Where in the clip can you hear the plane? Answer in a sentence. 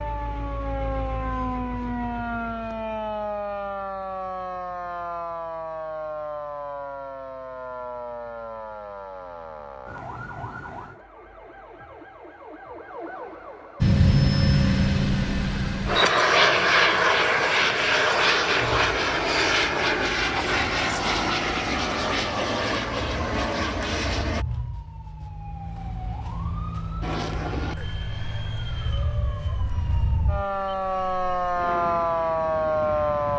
The plane can be heard from 13.8 to 24.4 s and from 27.0 to 33.3 s.